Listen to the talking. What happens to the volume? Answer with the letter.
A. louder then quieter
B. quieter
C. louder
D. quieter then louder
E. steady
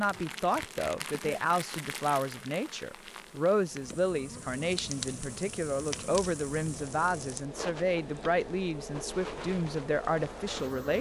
E.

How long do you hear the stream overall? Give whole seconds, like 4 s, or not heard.
not heard.